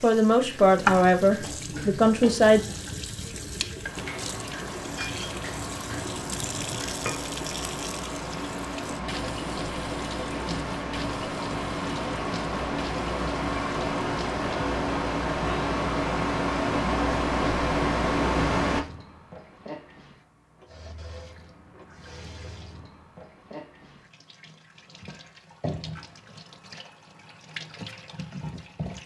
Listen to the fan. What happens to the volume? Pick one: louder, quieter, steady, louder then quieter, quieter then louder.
louder.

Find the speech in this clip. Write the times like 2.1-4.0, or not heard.
0.0-2.6.